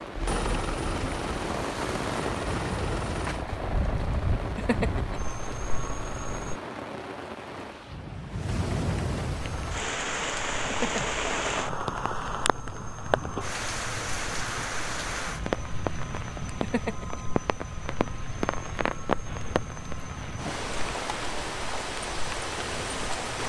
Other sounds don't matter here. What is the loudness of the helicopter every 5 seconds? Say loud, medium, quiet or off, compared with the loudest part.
loud, medium, medium, medium, medium.